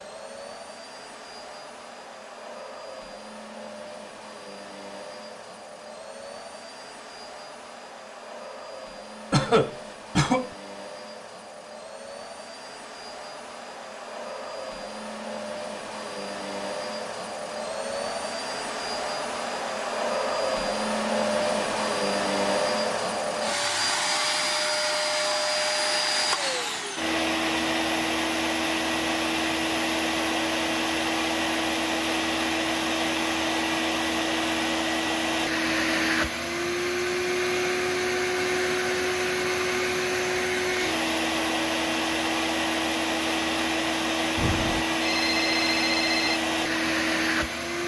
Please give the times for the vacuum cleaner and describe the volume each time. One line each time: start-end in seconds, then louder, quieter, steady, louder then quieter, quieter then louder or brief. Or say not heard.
0.0-47.8 louder.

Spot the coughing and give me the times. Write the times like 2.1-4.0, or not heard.
9.3-10.5.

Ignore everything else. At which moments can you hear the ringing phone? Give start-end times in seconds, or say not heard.
44.4-46.4.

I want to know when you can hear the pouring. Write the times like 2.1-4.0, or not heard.
not heard.